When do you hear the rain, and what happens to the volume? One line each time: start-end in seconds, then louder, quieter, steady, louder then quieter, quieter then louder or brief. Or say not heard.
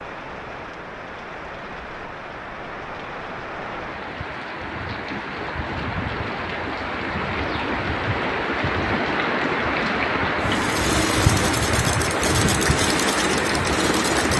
0.0-14.3 louder.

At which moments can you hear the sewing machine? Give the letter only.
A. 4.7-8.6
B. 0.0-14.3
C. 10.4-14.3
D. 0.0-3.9
C.